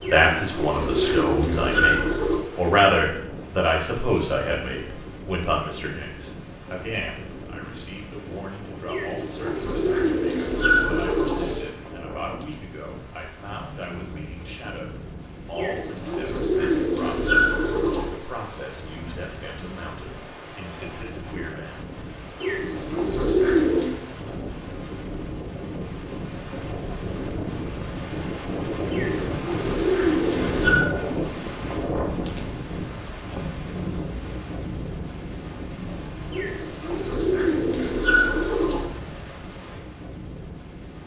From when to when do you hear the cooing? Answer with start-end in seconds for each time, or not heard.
0.0-2.4, 8.8-11.7, 15.6-18.1, 22.4-23.9, 28.9-30.9, 36.3-38.9.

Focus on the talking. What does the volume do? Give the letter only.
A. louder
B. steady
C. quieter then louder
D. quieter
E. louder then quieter
D.